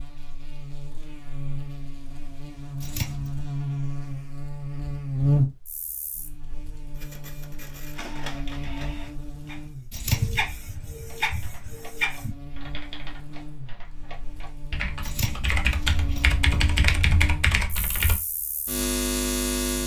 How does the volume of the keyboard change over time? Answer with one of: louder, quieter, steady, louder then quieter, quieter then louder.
louder.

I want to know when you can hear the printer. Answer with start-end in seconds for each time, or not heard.
7.0-12.3.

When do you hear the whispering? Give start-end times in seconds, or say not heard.
not heard.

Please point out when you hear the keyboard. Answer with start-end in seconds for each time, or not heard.
11.1-18.2.